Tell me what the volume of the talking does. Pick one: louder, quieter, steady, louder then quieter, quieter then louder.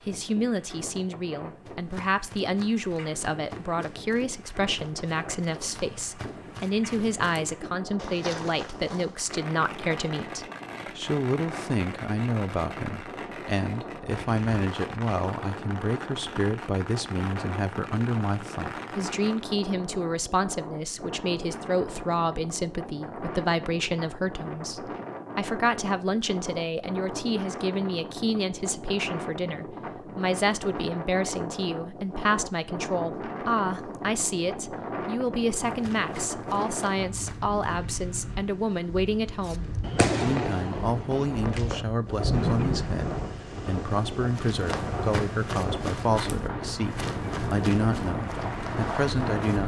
steady.